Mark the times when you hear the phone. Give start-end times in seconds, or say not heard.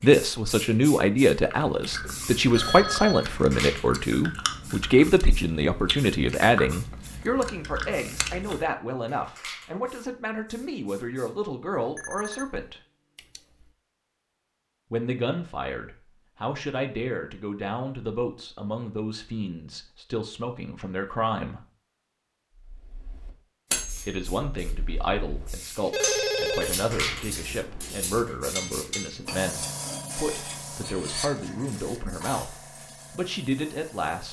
2.0-3.3, 11.8-13.7, 25.9-26.8.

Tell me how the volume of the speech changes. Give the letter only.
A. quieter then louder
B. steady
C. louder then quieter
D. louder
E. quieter
E.